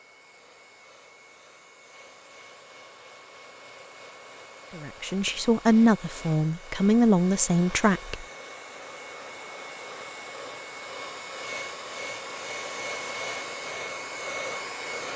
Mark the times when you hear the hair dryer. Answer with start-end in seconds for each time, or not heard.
0.0-15.1.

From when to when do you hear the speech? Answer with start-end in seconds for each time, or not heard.
4.8-8.2.